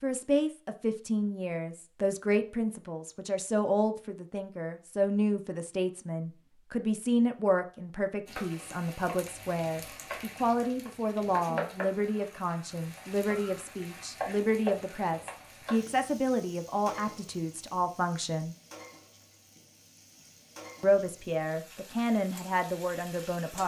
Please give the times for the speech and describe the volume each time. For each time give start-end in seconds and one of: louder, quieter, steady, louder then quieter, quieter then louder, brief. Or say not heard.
0.0-18.6 steady
20.8-23.6 brief.